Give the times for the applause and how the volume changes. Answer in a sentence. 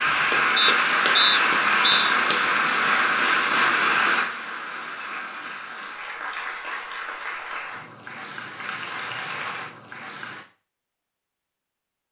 You can hear the applause from 0.0 to 10.4 s, getting quieter.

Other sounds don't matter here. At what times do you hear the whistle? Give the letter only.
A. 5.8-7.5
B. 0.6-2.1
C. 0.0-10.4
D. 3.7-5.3
B.